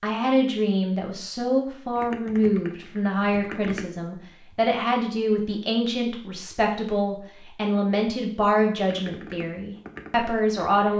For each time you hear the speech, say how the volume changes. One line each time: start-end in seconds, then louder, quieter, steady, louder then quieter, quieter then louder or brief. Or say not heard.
0.0-10.9 steady.